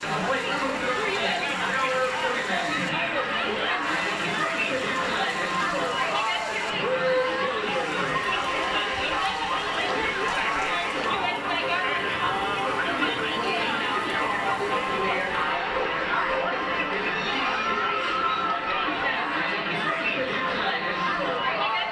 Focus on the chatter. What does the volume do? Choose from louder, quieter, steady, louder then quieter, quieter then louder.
steady.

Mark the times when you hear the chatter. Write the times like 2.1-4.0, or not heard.
0.0-21.8.